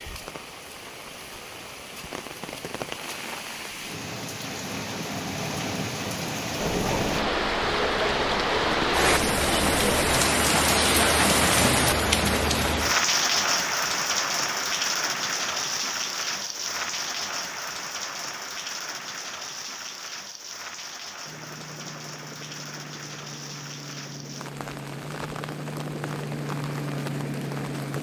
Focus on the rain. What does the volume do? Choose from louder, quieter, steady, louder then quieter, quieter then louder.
louder then quieter.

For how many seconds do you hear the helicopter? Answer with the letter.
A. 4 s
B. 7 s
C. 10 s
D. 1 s
C.